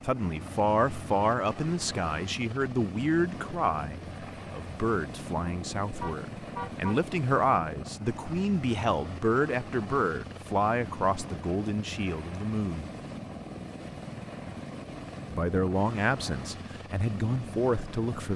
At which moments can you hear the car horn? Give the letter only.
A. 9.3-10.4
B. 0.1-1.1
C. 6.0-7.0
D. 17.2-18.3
C.